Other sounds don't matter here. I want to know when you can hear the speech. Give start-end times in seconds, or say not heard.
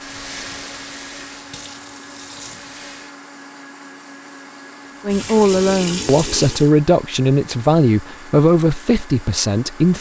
5.0-9.9.